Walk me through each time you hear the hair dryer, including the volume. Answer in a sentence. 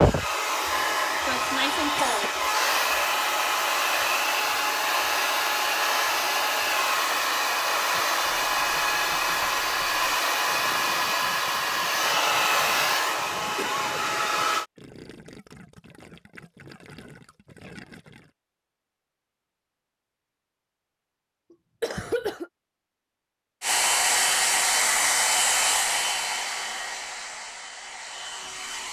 You can hear the hair dryer from 0.0 to 14.7 s, at a steady volume; and from 23.6 to 28.8 s, getting quieter.